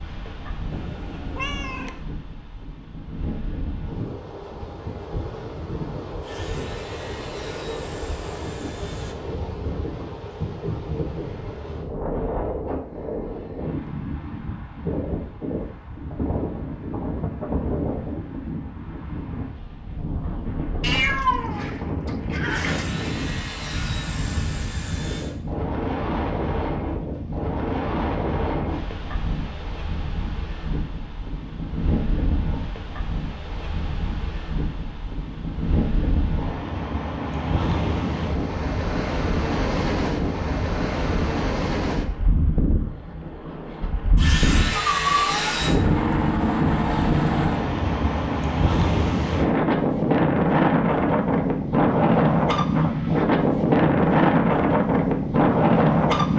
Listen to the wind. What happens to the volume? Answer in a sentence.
The volume of the wind goes up.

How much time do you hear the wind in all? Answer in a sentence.
You can hear the wind for 56 seconds altogether.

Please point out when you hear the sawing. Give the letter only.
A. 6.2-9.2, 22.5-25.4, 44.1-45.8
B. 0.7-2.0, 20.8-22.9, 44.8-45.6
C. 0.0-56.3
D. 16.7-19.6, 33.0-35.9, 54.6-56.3
A.